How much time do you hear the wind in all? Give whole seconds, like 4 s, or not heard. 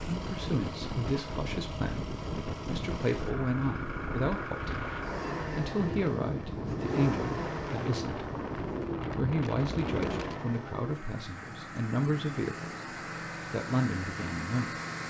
11 s.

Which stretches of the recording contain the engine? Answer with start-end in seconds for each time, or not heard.
0.0-15.0.